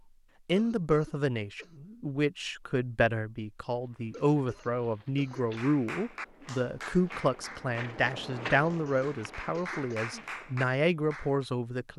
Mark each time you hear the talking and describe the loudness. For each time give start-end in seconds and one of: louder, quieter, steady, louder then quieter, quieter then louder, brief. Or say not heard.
0.5-11.9 steady.